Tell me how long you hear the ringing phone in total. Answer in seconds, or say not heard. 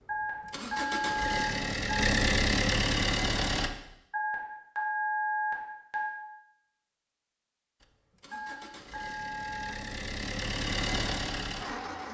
6 s.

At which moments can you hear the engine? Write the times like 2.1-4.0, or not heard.
0.0-3.7, 7.8-12.0.